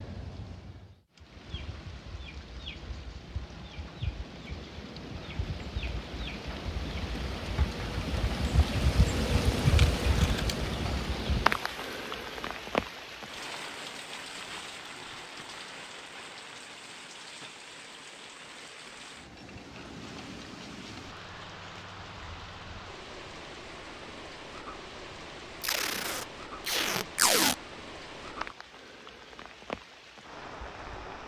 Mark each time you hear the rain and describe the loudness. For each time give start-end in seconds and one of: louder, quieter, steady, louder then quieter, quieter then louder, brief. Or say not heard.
0.0-31.2 louder then quieter.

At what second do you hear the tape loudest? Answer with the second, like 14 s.
27 s.